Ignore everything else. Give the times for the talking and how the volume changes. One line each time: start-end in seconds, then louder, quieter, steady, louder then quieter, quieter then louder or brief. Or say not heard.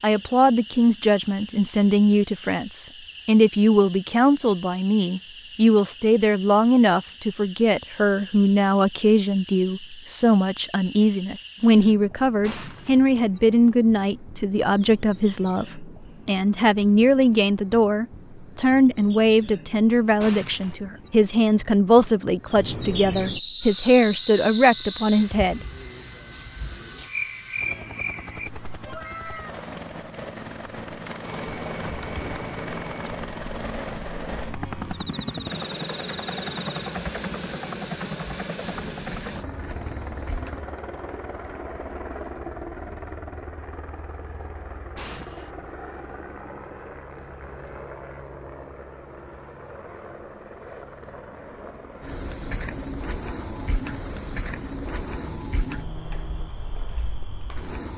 0.0-25.6 steady.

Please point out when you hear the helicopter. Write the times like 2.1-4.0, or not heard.
23.6-56.5.